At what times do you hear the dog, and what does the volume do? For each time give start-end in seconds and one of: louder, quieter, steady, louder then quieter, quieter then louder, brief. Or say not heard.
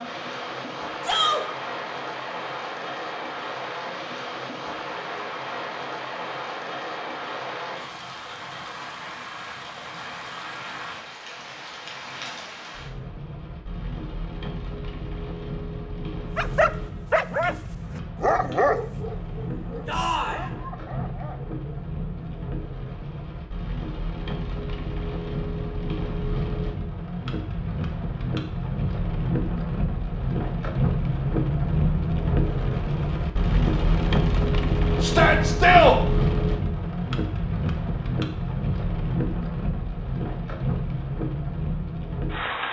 16.4-22.2 quieter.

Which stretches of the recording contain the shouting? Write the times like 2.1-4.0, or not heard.
1.0-1.4, 19.9-20.4, 35.0-36.0.